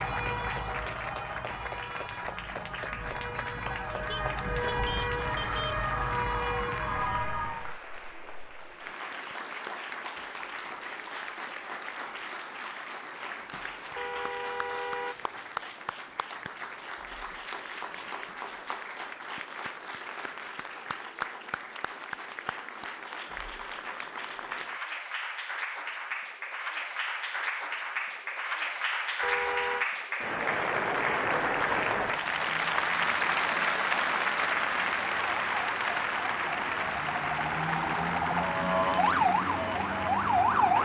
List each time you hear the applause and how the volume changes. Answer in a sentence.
The applause can be heard from 0.0 to 40.7 s, getting louder.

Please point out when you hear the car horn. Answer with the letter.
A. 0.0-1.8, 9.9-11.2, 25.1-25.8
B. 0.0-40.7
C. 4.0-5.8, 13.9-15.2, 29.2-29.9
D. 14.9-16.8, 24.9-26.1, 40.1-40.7
C.